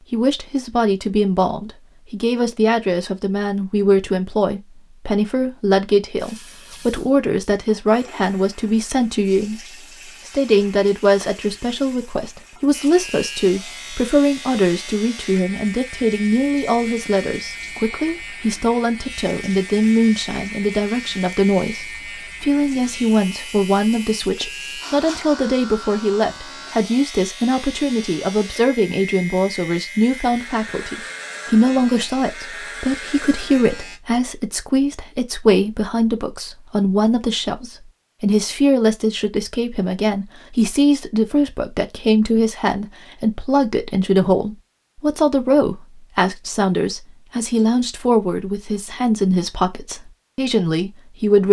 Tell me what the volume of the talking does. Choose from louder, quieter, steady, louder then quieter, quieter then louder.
steady.